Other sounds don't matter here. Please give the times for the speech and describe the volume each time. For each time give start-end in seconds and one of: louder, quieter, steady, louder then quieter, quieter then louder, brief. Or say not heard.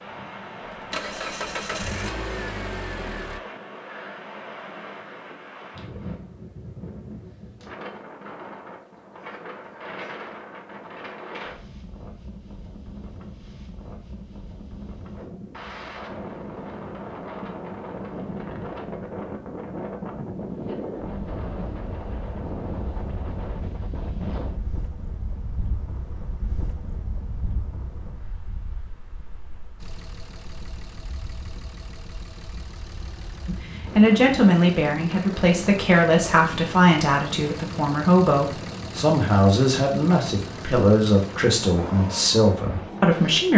33.5-43.5 steady.